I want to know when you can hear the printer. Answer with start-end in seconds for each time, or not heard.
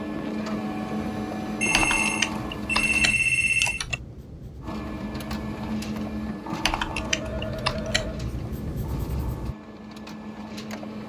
0.0-3.2, 4.6-11.0.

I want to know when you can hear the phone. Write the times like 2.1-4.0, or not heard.
1.6-3.9, 6.9-8.2.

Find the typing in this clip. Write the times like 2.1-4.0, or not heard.
1.7-4.0, 6.6-8.1.